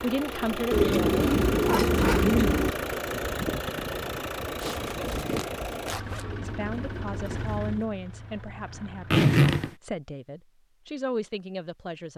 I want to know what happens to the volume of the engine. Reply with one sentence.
The loudness of the engine goes down.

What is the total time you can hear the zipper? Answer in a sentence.
You can hear the zipper for 3 seconds altogether.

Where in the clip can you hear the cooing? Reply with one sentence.
The cooing can be heard from 0.7 to 2.8 s and from 6.2 to 8.0 s.